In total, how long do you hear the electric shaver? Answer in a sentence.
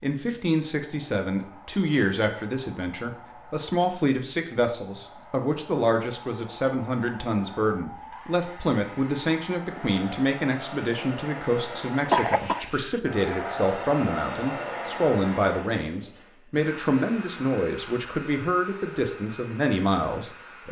You can't hear the electric shaver here.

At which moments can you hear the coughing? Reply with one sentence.
The coughing can be heard from 12.1 to 13.0 s.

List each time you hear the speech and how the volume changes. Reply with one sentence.
The speech can be heard from 0.0 to 20.6 s, at a steady volume.